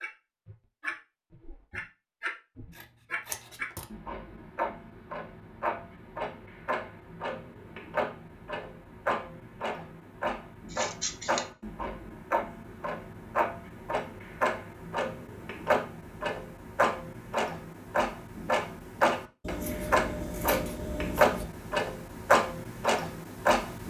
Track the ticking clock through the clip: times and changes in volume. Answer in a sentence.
The ticking clock can be heard from 0.0 to 23.8 s, getting louder.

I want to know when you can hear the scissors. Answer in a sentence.
The scissors can be heard from 2.8 to 3.9 s, from 10.7 to 11.4 s and from 19.4 to 21.4 s.